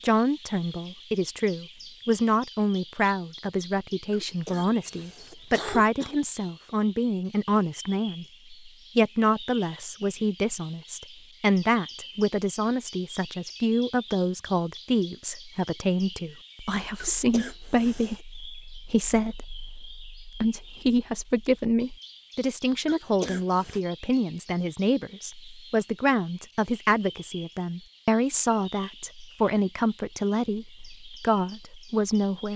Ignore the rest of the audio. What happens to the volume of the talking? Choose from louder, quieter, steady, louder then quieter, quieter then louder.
steady.